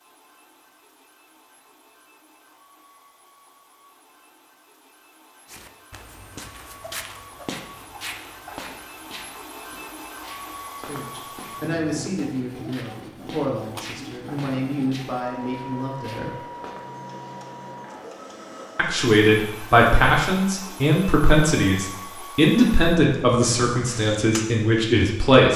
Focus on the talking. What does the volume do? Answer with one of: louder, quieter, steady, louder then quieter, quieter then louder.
louder.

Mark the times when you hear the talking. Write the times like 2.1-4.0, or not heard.
10.8-16.3, 18.8-25.5.